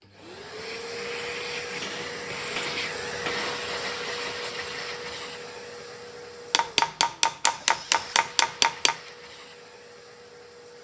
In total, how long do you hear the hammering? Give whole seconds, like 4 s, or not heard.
4 s.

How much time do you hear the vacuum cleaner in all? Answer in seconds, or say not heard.
11 s.